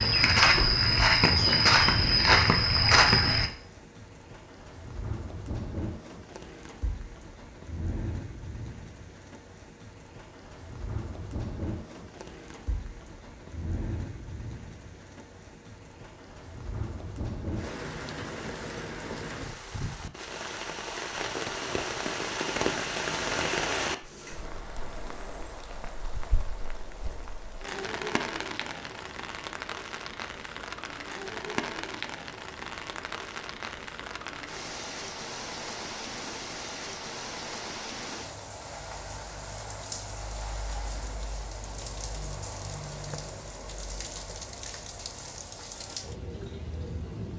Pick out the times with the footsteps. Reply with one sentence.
The footsteps can be heard from 0.0 to 3.5 s.